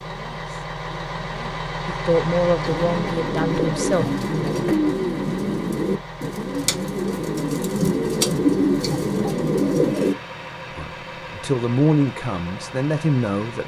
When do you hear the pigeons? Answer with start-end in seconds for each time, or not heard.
2.6-10.2.